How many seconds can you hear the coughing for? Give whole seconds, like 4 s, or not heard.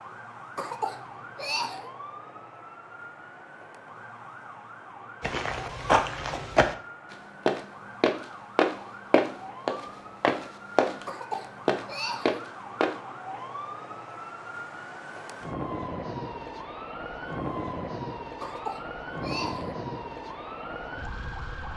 4 s.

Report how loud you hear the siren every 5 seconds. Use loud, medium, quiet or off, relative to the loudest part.
medium, medium, medium, loud, loud.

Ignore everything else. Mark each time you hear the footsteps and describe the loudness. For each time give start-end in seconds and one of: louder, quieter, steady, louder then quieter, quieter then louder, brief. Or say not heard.
5.2-13.0 steady.